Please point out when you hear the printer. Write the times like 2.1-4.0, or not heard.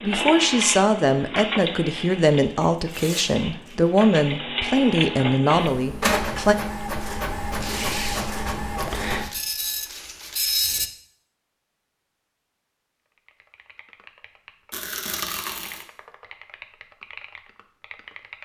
0.0-10.9.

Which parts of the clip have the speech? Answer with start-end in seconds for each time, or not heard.
0.0-6.5.